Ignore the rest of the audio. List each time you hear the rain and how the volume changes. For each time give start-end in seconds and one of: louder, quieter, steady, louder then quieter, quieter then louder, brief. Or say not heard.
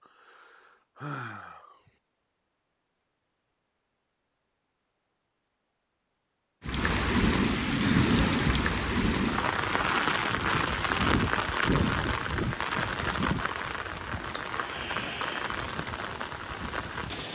6.7-17.3 quieter.